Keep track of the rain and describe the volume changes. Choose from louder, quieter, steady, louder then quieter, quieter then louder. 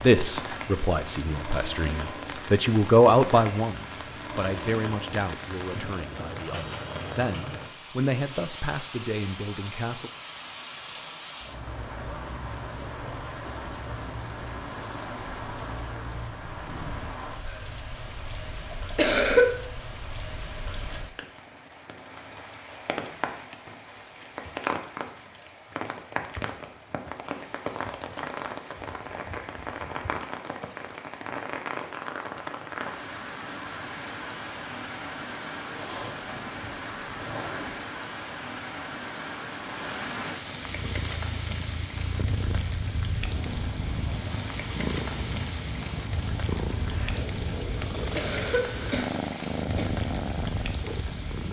steady.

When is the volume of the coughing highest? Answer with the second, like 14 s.
19 s.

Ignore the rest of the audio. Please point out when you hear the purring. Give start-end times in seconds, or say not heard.
40.6-51.4.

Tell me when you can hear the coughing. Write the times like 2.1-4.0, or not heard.
18.9-19.4, 48.1-49.9.